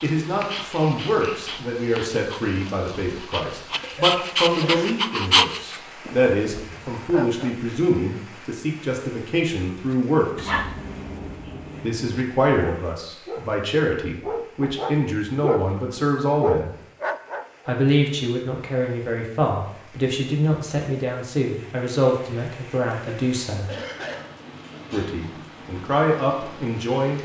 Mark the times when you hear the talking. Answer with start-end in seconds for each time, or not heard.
0.0-10.6, 11.8-16.7, 17.6-23.6, 24.9-27.1.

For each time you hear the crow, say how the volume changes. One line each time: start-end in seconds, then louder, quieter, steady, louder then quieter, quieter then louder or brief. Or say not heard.
not heard.